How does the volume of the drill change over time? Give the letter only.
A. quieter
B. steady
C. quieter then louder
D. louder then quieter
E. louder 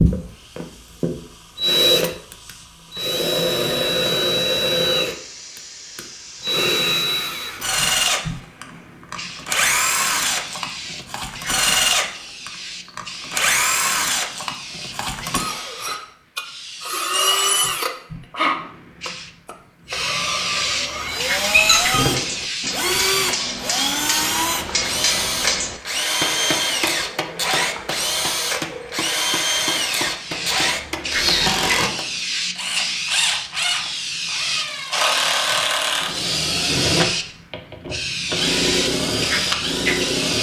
B.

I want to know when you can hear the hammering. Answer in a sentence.
The hammering can be heard from 20.8 to 32.1 s.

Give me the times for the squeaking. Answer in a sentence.
The squeaking can be heard from 21.5 to 22.1 s.